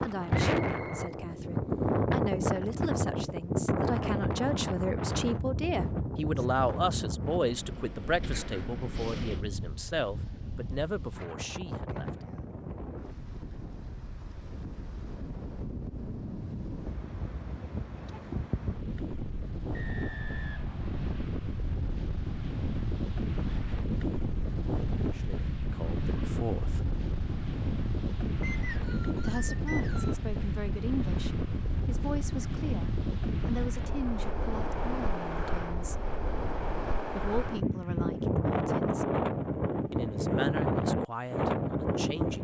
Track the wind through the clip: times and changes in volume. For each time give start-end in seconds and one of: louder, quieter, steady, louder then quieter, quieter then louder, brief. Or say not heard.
0.0-42.3 quieter then louder.